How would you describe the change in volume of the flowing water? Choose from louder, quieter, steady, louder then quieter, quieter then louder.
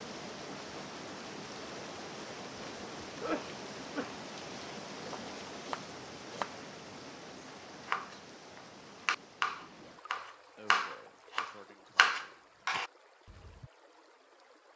quieter.